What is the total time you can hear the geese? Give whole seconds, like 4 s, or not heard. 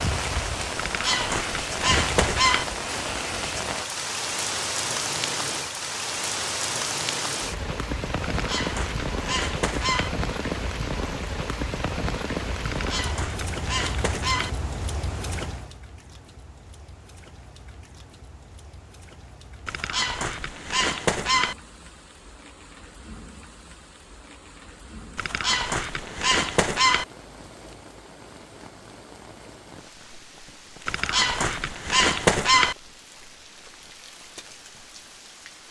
11 s.